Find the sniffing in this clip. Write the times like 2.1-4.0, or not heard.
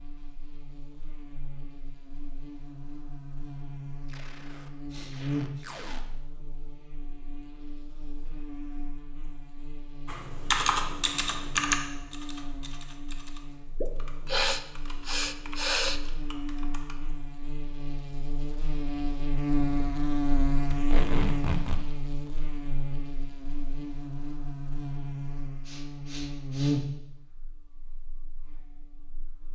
4.9-5.8, 13.8-16.0, 25.6-26.8.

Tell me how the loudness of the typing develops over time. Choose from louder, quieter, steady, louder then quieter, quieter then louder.
quieter.